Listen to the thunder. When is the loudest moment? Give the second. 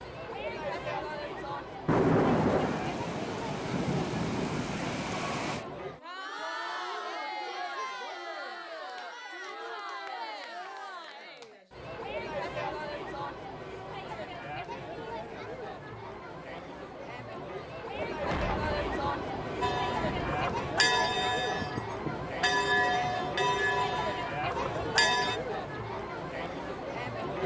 2 s.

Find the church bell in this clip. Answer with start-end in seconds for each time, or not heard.
19.6-25.4.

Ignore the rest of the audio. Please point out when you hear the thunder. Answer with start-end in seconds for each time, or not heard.
1.9-5.7, 17.9-20.6.